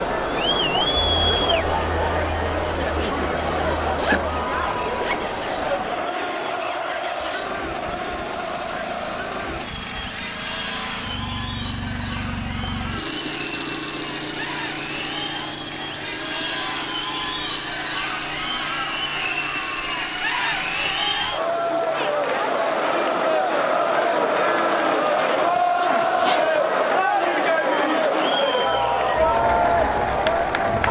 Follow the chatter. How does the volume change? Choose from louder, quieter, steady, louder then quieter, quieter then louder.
quieter then louder.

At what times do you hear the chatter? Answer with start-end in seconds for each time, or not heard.
0.0-30.8.